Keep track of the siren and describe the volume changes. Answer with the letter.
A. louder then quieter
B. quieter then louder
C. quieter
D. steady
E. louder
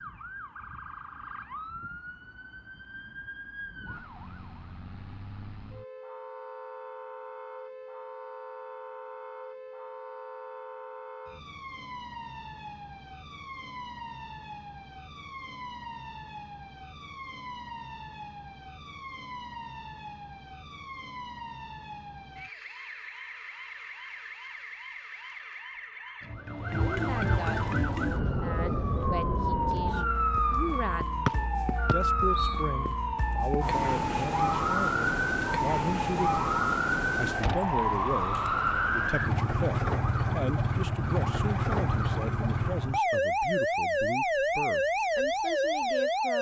E.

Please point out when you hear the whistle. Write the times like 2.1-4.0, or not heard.
31.2-32.5.